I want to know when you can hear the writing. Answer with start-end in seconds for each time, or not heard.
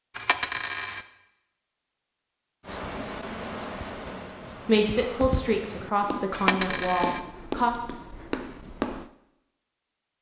2.6-9.1.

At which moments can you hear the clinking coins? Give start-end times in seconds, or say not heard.
0.1-1.1, 6.3-7.2.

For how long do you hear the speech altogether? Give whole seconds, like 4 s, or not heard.
3 s.